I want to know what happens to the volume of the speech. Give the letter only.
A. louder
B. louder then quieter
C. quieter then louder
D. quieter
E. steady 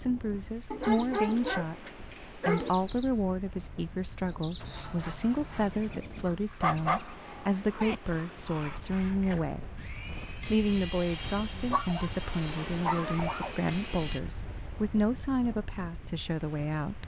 E.